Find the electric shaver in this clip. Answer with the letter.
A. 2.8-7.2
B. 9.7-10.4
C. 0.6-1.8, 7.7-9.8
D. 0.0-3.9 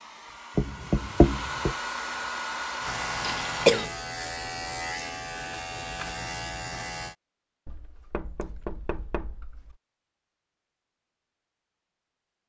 A.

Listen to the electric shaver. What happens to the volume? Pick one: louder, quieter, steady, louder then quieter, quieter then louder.
steady.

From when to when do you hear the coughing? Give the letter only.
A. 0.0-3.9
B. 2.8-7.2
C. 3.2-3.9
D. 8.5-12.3
C.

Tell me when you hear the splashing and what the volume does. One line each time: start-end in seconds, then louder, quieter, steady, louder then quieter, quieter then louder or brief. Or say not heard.
not heard.